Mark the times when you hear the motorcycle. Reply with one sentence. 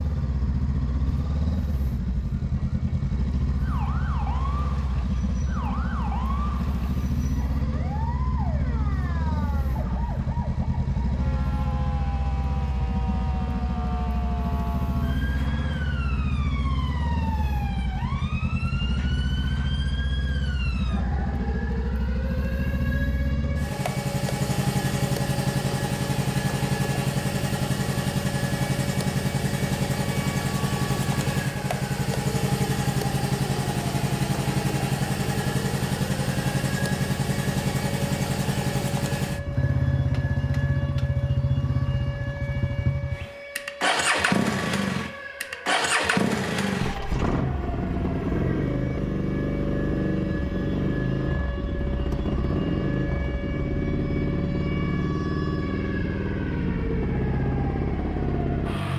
You can hear the motorcycle from 0.0 to 58.9 s.